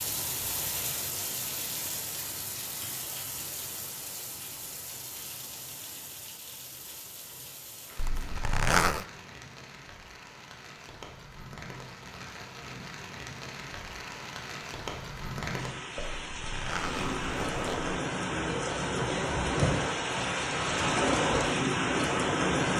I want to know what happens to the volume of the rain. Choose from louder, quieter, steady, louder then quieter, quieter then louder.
quieter then louder.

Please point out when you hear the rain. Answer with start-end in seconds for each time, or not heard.
0.0-22.7.